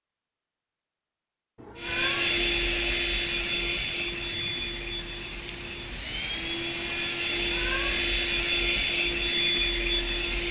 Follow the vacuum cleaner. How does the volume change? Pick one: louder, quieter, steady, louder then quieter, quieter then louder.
quieter then louder.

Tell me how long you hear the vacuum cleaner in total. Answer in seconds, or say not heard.
9 s.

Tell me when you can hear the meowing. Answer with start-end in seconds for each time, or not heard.
1.6-2.4, 7.3-8.1.